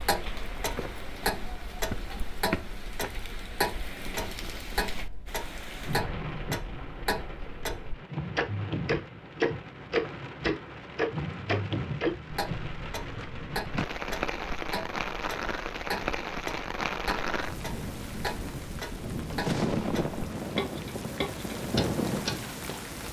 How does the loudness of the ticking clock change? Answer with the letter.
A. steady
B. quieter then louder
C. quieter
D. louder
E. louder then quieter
E.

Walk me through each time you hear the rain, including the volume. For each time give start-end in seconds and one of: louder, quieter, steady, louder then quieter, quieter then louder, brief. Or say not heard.
0.0-23.0 louder.